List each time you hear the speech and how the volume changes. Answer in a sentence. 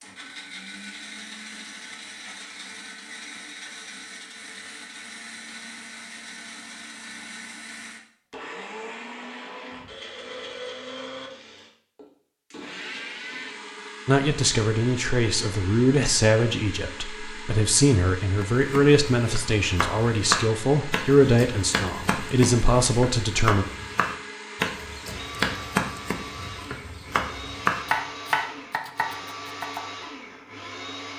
The speech can be heard from 14.1 to 23.6 s, at a steady volume.